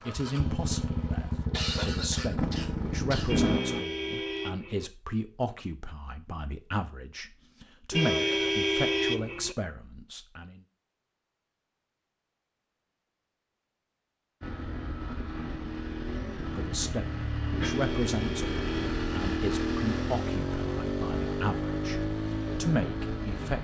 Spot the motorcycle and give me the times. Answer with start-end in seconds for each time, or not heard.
0.0-3.9, 14.4-23.5.